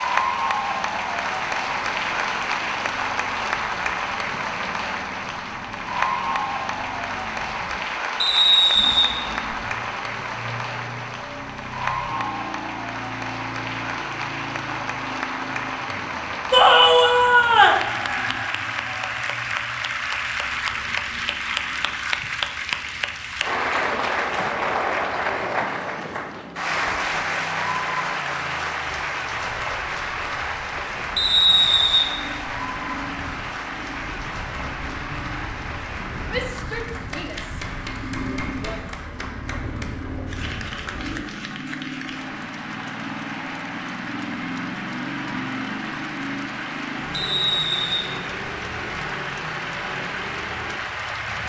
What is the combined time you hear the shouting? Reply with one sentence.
The shouting can be heard for 4 seconds in total.